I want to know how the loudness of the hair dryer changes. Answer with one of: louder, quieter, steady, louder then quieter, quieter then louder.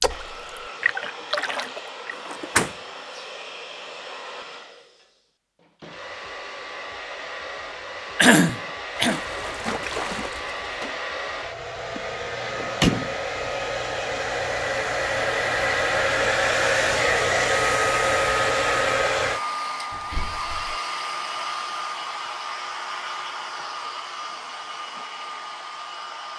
louder then quieter.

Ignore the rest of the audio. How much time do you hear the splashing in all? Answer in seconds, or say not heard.
4 s.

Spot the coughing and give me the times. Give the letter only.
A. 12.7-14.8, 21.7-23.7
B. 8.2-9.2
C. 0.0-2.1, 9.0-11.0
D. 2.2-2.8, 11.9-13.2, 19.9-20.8
B.